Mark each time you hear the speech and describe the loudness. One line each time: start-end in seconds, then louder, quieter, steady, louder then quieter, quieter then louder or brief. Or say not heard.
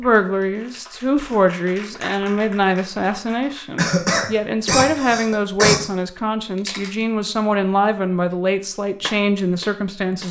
0.0-10.2 steady.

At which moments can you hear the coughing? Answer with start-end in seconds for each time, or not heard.
3.8-5.8.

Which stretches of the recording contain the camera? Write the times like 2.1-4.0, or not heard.
6.5-7.0.